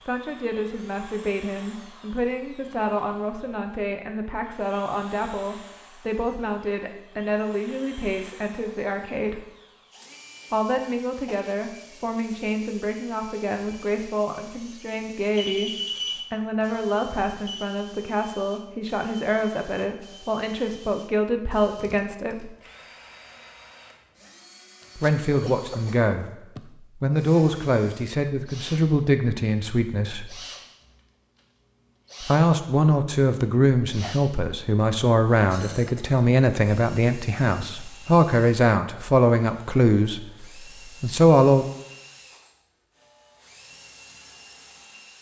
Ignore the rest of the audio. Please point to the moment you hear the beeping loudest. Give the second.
16 s.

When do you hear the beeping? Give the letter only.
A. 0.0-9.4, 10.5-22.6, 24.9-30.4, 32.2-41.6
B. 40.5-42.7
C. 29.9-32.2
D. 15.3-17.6
D.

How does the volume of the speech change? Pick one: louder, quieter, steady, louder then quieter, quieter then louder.
louder.